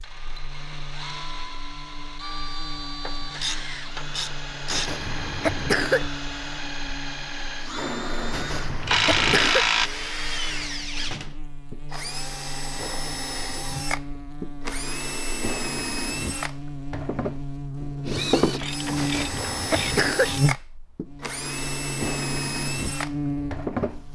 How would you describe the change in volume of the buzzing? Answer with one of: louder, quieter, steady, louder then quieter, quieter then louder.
louder.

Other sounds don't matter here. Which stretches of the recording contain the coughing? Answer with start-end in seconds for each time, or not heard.
4.7-6.1, 8.3-9.7, 18.9-20.4.